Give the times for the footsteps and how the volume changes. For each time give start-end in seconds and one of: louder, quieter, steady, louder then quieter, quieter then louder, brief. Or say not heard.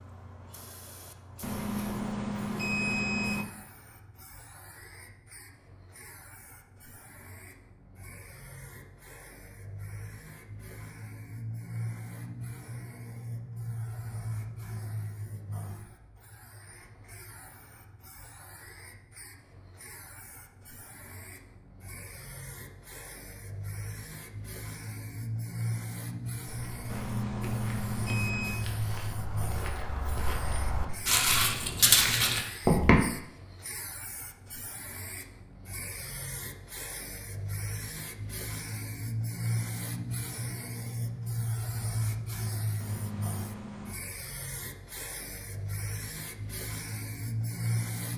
26.4-33.0 louder.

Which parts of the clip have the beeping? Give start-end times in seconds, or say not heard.
1.4-3.5, 26.9-28.6, 42.8-44.0.